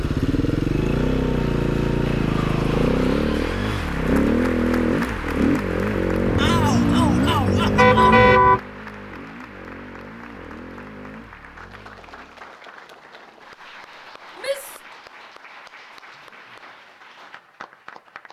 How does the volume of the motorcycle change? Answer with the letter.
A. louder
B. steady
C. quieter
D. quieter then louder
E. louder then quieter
C.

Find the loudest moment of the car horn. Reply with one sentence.
The loudest moment of the car horn is at 8 seconds.